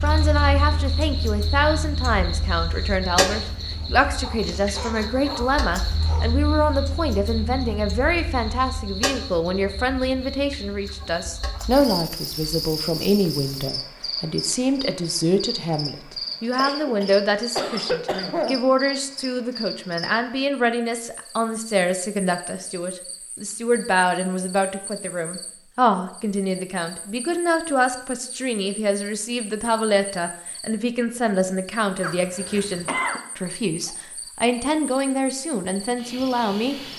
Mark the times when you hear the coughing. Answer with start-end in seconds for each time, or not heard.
4.4-5.0, 16.6-18.6, 32.0-33.2.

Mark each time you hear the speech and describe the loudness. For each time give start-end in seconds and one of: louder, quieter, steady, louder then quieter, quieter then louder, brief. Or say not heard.
0.0-36.8 steady.